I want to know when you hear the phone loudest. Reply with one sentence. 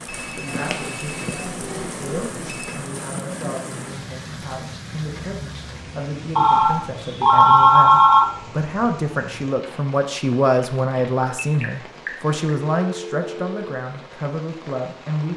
The loudest moment of the phone is at 8 seconds.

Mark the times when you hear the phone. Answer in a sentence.
You can hear the phone from 0.1 to 2.8 s, from 6.3 to 8.2 s and from 10.9 to 13.7 s.